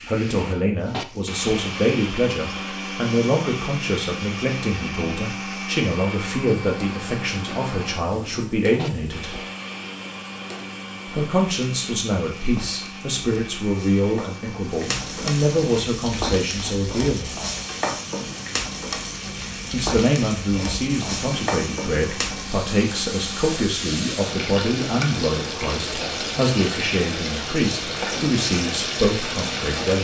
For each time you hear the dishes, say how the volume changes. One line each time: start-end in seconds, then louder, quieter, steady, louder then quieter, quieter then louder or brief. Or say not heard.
not heard.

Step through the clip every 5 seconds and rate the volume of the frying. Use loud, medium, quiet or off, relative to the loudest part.
quiet, quiet, medium, loud, loud, loud.